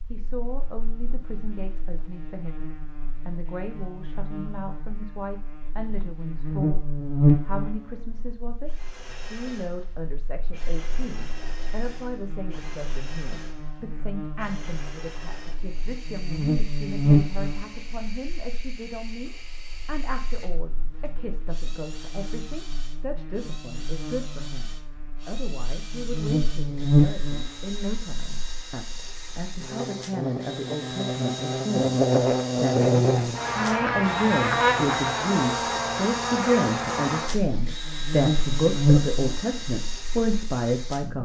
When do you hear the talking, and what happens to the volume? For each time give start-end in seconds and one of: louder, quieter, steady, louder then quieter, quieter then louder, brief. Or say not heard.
0.1-41.1 louder.